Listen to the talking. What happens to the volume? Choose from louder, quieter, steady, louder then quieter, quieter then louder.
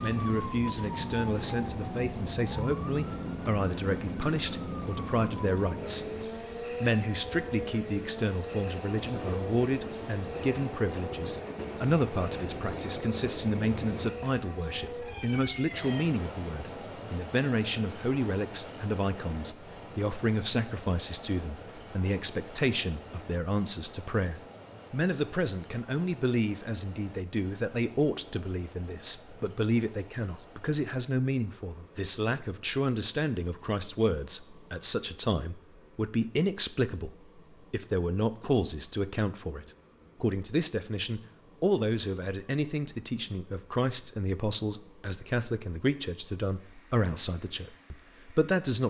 steady.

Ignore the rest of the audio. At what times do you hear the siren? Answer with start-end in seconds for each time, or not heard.
0.0-16.1.